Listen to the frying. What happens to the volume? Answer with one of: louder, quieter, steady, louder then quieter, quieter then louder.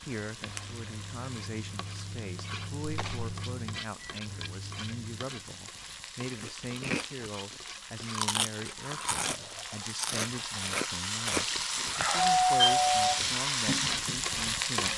louder.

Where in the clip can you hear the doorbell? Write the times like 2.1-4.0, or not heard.
2.8-3.3, 12.2-13.3.